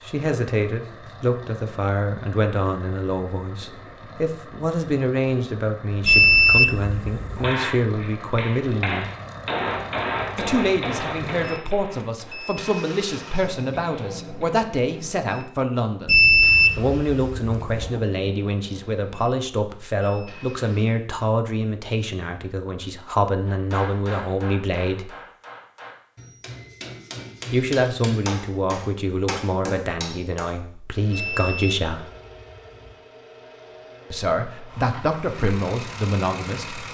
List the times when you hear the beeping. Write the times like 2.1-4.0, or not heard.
6.0-7.5, 16.1-18.0, 31.1-33.0.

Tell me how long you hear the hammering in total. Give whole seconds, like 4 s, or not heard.
14 s.